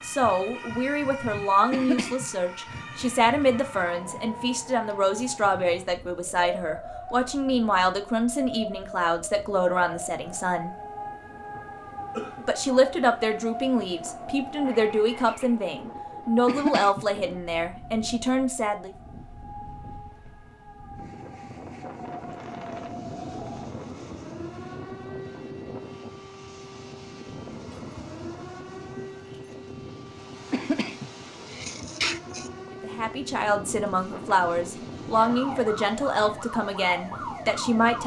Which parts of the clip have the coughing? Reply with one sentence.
The coughing can be heard from 1.7 to 2.2 s, from 16.4 to 17.1 s and from 30.5 to 32.5 s.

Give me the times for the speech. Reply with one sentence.
The speech can be heard from 0.0 to 10.8 s, from 12.4 to 18.9 s and from 32.8 to 38.0 s.